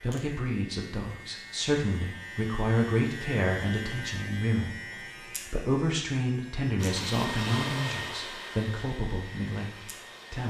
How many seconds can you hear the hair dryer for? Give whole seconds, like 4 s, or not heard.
4 s.